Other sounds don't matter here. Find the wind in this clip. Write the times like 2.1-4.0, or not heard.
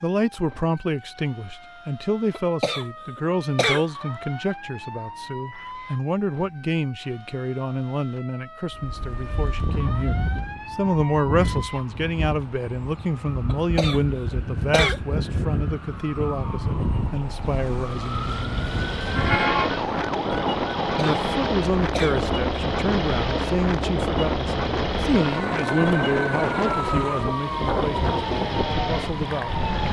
8.7-29.8.